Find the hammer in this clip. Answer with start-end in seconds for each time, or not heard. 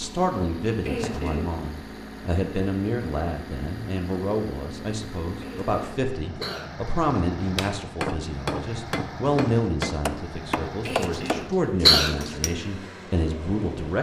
7.4-12.6.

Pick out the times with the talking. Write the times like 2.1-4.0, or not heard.
0.0-13.9.